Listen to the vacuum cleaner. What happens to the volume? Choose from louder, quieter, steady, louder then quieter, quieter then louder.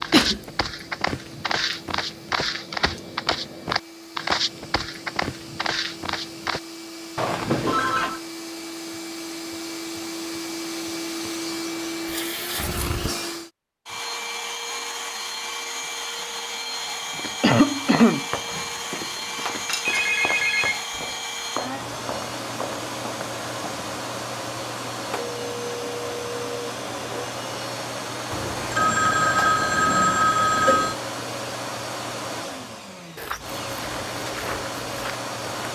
louder.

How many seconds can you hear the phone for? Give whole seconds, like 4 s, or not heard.
6 s.